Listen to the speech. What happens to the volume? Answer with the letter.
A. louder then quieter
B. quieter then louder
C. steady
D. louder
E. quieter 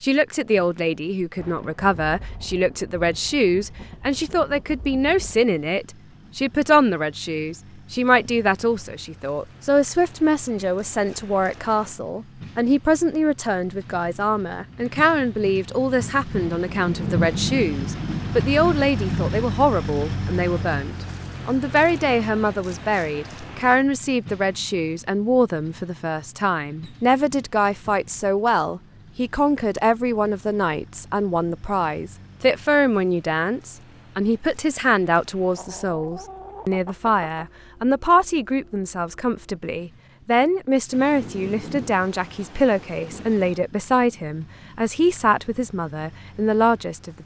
C.